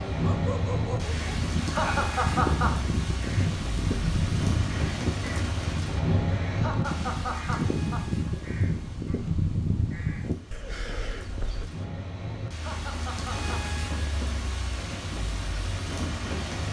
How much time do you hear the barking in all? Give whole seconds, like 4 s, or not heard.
2 s.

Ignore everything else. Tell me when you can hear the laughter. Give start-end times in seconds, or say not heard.
1.6-2.8, 6.5-8.1, 12.4-13.7.